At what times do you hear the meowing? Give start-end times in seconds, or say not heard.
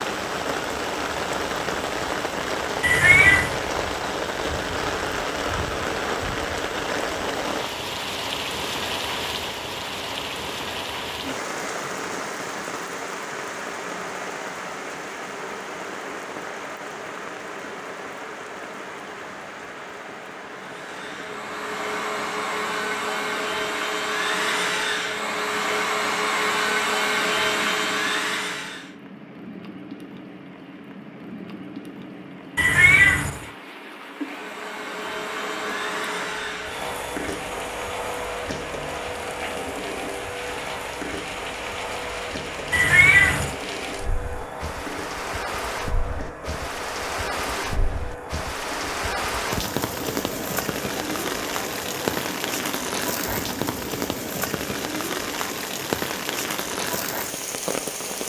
2.8-3.5, 32.5-33.5, 42.7-43.5.